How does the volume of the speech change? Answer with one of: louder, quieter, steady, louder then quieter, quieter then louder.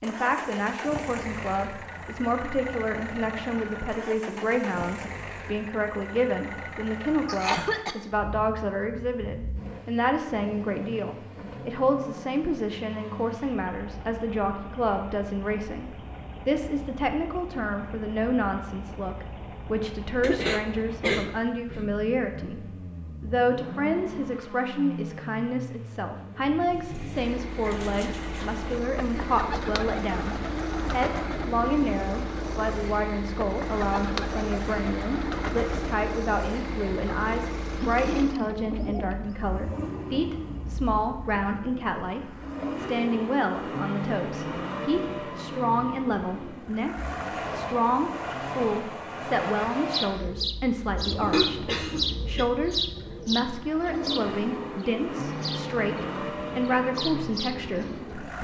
steady.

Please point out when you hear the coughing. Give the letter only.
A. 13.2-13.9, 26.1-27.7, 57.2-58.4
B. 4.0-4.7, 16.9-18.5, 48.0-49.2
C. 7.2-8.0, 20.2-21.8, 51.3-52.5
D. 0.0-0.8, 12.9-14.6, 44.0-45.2
C.